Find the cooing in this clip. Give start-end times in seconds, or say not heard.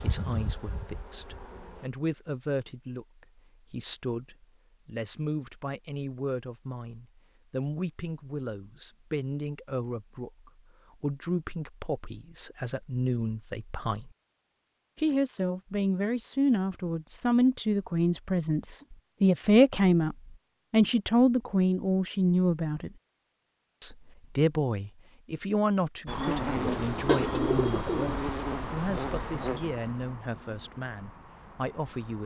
26.6-28.2.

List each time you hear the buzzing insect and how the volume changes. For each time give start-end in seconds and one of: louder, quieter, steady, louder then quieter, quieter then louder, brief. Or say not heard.
0.0-1.9 brief
26.1-32.2 quieter.